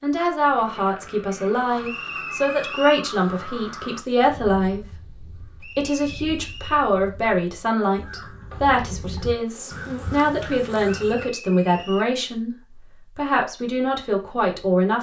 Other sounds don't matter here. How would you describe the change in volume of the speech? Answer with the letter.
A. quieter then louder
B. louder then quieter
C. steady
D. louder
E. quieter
C.